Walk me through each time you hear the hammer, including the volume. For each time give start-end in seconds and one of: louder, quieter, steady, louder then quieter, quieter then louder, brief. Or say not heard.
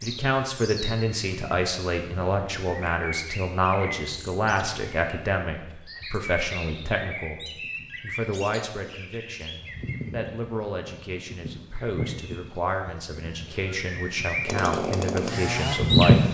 not heard.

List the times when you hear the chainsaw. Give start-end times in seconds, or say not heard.
14.4-16.2.